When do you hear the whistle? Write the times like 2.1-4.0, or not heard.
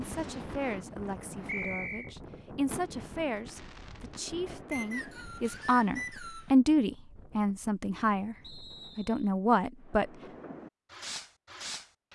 1.4-2.1, 4.7-6.5, 8.4-9.3.